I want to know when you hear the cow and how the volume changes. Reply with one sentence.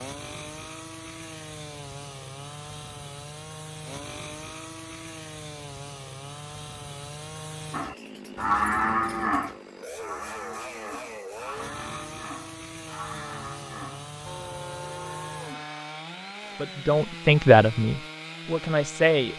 You can hear the cow from 7.7 to 15.8 s, getting quieter.